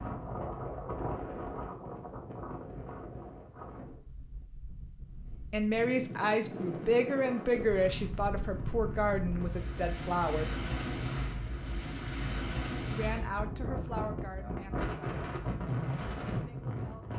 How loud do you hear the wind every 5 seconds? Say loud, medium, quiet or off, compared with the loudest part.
medium, medium, loud, loud.